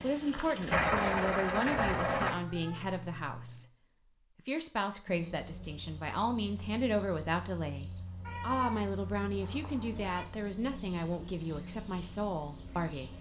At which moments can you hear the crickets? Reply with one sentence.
You can hear the crickets from 5.0 to 13.1 s.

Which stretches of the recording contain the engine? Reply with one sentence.
The engine can be heard from 0.0 to 2.4 s.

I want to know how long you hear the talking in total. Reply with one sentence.
The talking can be heard for 13 seconds in total.